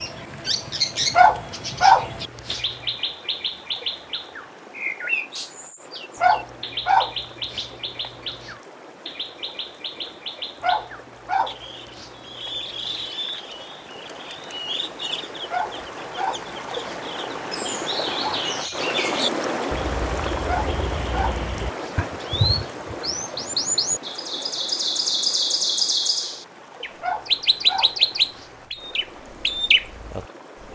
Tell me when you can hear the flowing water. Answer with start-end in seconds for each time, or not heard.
0.0-30.6.